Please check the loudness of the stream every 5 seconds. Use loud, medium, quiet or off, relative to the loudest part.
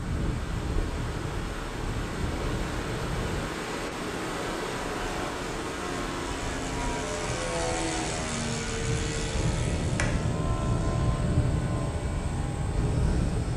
loud, loud, medium.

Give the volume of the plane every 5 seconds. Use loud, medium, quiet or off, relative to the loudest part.
medium, loud, loud.